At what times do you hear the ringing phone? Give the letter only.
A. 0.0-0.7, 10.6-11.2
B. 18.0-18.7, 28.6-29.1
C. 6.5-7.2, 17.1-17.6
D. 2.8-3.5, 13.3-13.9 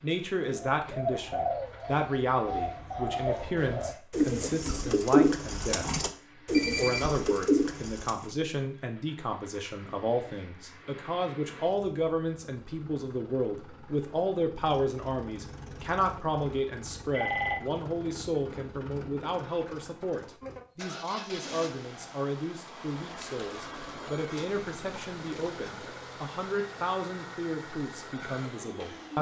C.